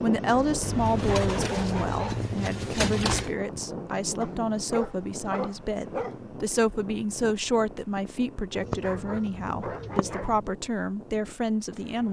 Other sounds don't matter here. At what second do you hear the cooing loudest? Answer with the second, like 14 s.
3 s.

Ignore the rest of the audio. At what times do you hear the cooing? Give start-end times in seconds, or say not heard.
0.6-3.3, 8.6-10.4.